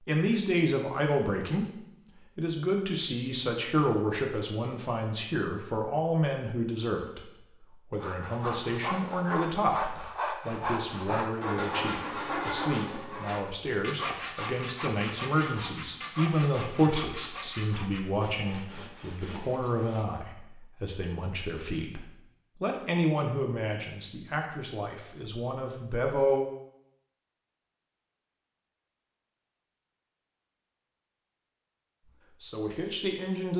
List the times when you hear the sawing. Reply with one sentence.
The sawing can be heard from 8.0 to 20.2 s.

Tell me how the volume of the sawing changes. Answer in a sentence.
The volume of the sawing goes down.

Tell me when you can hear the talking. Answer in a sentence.
The talking can be heard from 0.1 to 26.4 s and from 32.4 to 33.5 s.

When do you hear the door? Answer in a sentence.
You can't hear the door here.